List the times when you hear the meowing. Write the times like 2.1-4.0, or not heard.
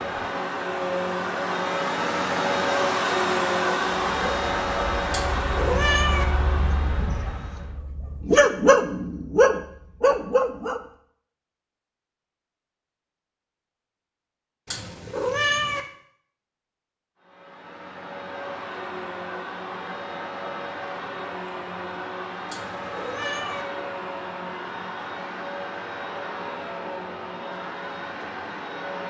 5.1-6.2, 14.7-15.8, 22.5-23.6.